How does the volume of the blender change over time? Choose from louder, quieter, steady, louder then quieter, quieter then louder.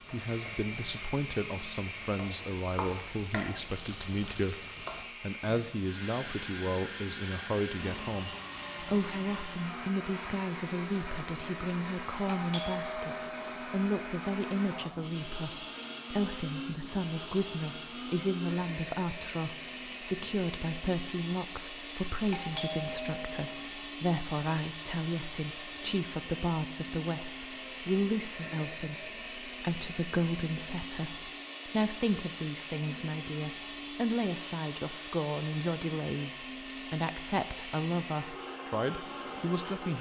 steady.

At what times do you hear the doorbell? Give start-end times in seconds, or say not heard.
12.2-13.8, 22.3-23.6.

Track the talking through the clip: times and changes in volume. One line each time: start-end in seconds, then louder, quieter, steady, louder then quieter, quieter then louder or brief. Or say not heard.
0.1-4.5 steady
5.2-39.9 steady.